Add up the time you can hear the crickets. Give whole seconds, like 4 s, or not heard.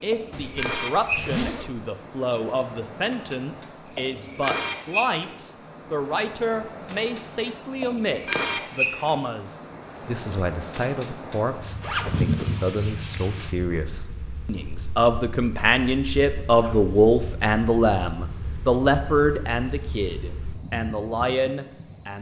22 s.